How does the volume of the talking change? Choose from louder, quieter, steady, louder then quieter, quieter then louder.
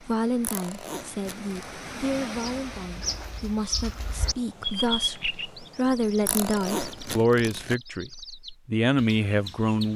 louder.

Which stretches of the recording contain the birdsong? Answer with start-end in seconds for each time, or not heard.
2.4-9.9.